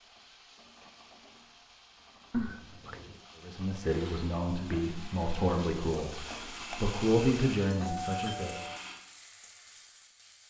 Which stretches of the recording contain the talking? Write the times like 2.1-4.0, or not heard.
3.4-8.6.